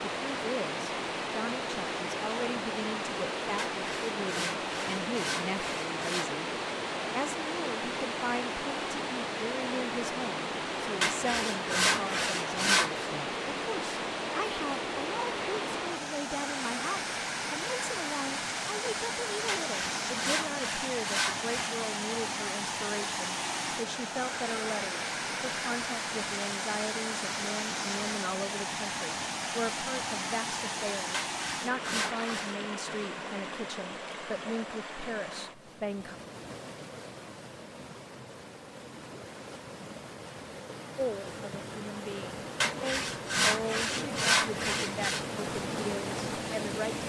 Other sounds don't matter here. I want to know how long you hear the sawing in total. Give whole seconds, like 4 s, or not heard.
11 s.